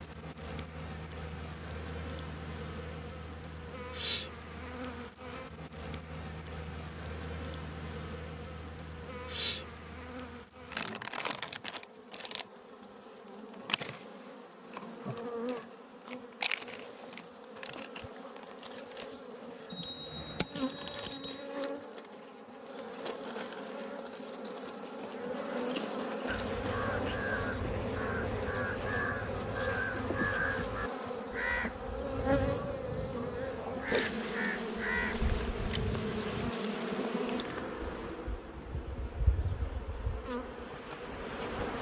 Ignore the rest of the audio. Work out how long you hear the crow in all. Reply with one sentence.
You can hear the crow for 10 seconds altogether.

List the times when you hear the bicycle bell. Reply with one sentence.
The bicycle bell can be heard from 19.7 to 21.5 s.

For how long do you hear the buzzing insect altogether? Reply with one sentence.
You can hear the buzzing insect for 42 seconds altogether.